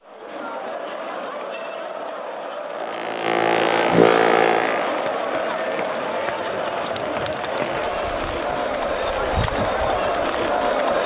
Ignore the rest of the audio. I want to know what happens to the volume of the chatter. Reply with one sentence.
The volume of the chatter goes up.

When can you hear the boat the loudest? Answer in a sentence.
The volume of the boat peaks at 4 seconds.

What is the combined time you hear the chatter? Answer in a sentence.
You can hear the chatter for 11 seconds altogether.